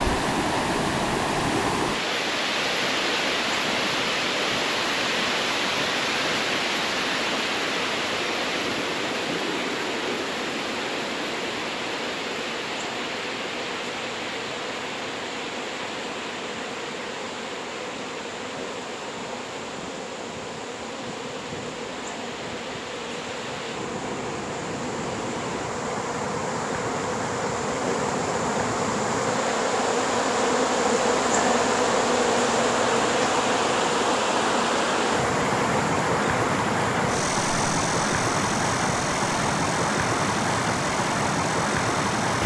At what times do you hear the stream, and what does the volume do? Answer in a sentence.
You can hear the stream from 0.0 to 42.4 s, getting quieter then louder.